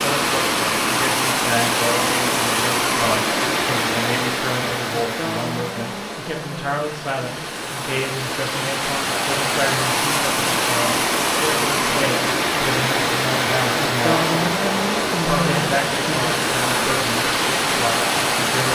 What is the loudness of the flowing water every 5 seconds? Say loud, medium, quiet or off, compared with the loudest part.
loud, medium, loud, loud.